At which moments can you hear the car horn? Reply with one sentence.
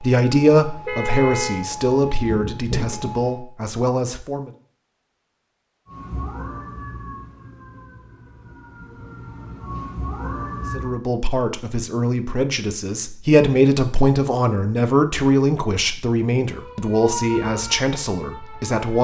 You can hear the car horn from 0.8 to 1.6 s.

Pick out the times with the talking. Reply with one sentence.
You can hear the talking from 0.0 to 4.5 s and from 10.7 to 18.9 s.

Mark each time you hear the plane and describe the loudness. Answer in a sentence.
The plane can't be heard in this clip.